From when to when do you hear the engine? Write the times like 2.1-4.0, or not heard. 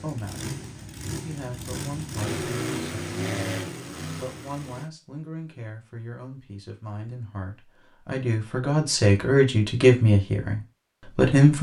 0.0-4.9.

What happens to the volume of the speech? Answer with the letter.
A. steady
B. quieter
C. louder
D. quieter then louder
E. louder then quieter
C.